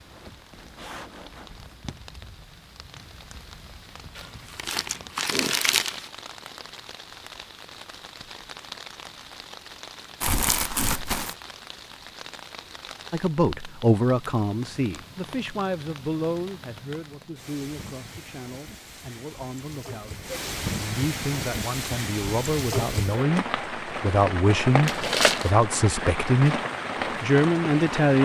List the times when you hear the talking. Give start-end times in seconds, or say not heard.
13.1-26.6, 27.2-28.2.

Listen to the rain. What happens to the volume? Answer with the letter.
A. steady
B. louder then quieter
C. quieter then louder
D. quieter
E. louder
E.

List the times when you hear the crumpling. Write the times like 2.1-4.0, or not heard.
4.2-6.1, 10.2-11.3, 24.9-25.6.